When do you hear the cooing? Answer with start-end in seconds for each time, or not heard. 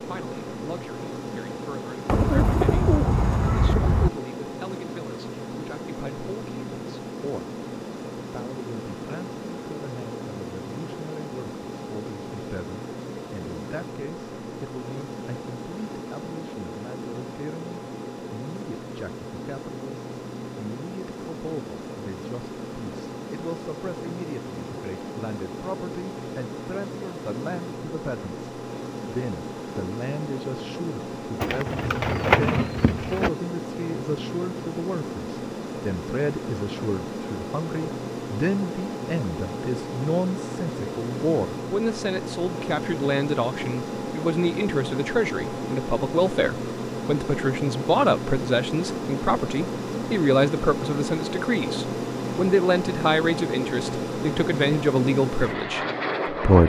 2.0-4.1, 31.4-33.3.